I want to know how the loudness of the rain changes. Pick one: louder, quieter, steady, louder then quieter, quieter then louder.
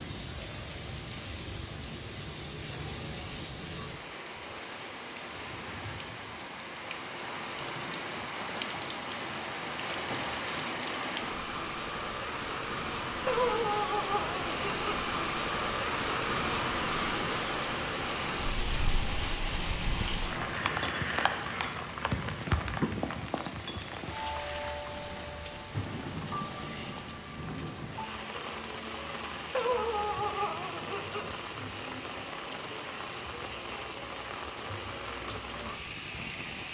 louder then quieter.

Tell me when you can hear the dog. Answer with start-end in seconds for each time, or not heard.
13.2-14.9, 29.5-31.3.